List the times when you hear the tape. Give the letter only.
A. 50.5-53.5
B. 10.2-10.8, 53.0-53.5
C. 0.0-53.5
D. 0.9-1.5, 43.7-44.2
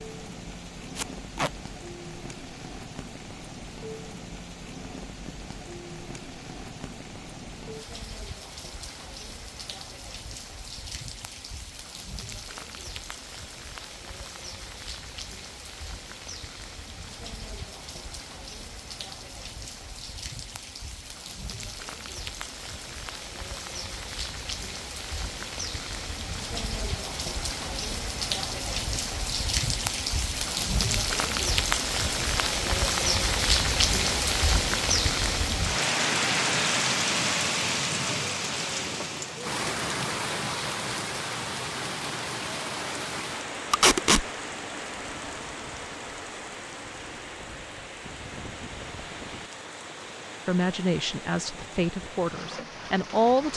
D.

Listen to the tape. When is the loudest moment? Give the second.
44 s.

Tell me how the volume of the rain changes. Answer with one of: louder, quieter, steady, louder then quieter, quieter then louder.
louder then quieter.